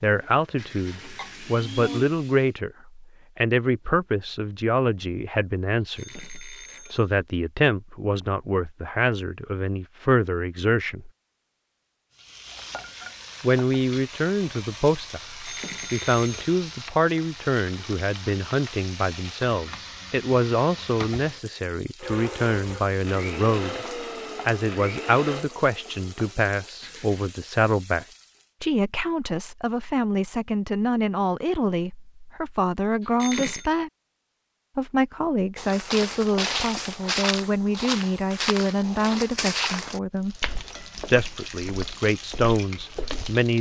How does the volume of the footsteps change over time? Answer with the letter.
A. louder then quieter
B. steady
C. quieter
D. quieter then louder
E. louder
C.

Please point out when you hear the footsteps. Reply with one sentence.
The footsteps can be heard from 35.5 to 43.4 s.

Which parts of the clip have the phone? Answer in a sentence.
You can hear the phone from 5.8 to 7.2 s, from 15.2 to 16.6 s and from 33.0 to 33.6 s.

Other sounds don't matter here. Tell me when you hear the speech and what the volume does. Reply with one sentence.
The speech can be heard from 0.0 to 11.1 s, at a steady volume; from 13.4 to 33.9 s, at a steady volume; from 34.8 to 40.4 s, at a steady volume; and briefly from 41.0 to 43.5 s.